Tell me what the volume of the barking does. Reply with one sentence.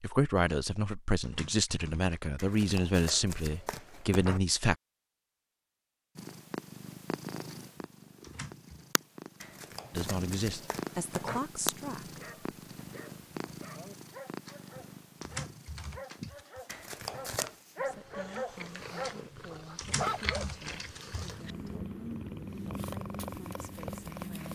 The volume of the barking goes up.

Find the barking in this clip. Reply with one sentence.
You can hear the barking from 12.1 to 20.6 s.